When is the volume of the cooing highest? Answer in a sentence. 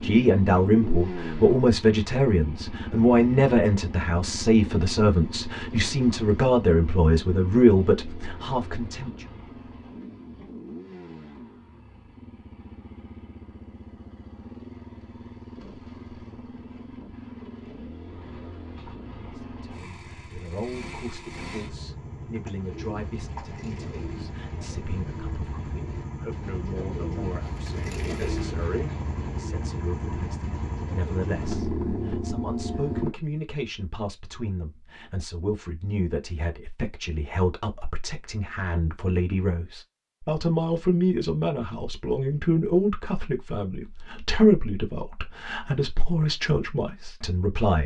The loudest moment of the cooing is at 28 seconds.